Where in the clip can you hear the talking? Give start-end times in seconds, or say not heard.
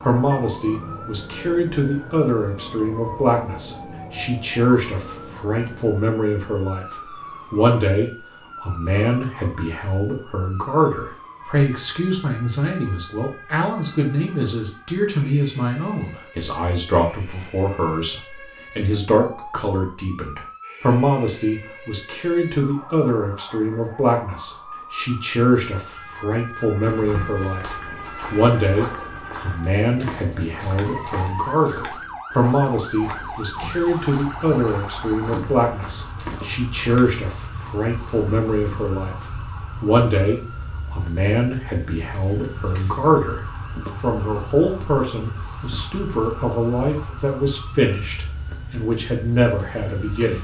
0.1-43.4, 44.0-50.3.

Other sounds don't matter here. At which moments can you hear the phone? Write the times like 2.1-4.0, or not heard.
not heard.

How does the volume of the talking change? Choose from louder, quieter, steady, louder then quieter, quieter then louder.
steady.